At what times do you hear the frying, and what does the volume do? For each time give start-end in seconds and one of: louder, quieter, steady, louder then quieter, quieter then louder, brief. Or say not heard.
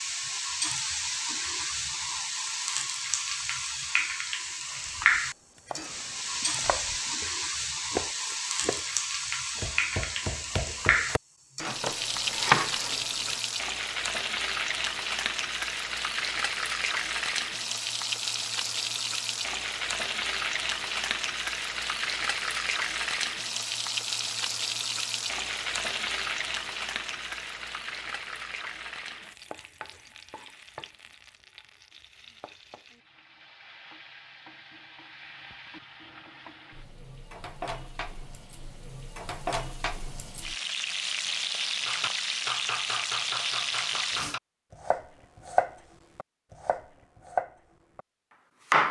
0.0-44.4 quieter then louder.